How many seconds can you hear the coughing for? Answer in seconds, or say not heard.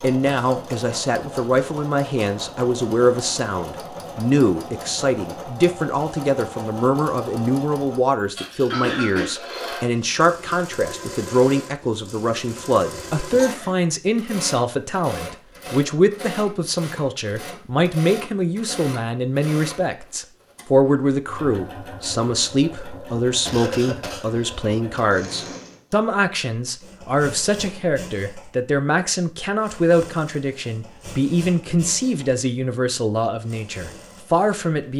3 s.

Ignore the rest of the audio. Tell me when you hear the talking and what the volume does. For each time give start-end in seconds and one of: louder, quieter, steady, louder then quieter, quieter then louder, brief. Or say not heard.
0.0-34.9 steady.